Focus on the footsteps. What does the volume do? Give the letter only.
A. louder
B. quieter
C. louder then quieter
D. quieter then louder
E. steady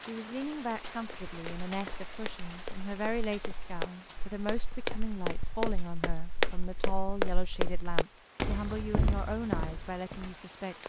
A.